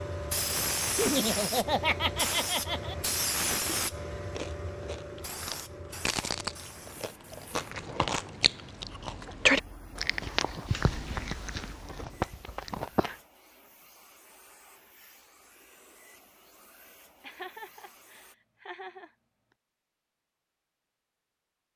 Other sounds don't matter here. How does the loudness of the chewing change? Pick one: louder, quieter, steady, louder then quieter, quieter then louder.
louder then quieter.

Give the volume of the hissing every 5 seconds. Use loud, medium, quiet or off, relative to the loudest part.
loud, quiet, quiet, quiet, off.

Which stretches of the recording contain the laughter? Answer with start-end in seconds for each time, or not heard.
0.9-3.0, 17.2-19.1.